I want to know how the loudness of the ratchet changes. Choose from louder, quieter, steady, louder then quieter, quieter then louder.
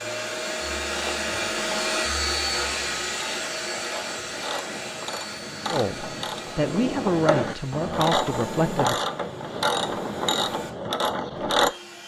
louder.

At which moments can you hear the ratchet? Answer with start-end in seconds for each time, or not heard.
0.9-11.7.